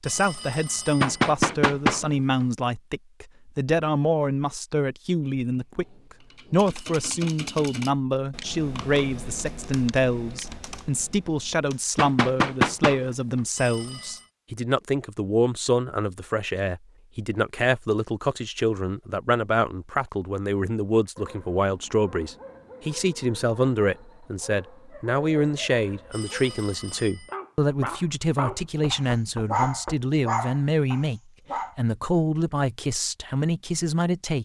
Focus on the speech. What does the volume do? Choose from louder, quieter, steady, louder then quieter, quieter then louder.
steady.